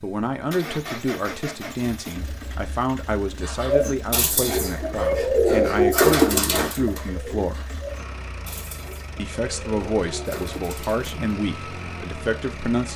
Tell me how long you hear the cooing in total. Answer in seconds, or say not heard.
8 s.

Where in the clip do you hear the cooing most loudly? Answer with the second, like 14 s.
6 s.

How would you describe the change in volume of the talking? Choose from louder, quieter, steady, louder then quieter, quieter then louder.
steady.